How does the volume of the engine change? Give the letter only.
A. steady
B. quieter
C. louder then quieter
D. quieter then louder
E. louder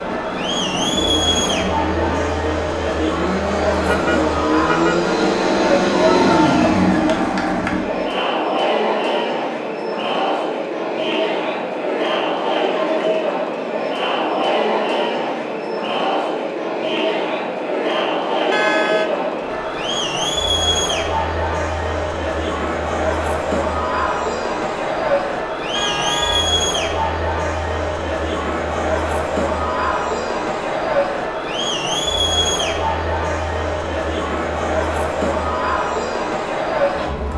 E.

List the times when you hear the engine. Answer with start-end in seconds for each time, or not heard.
0.0-8.2.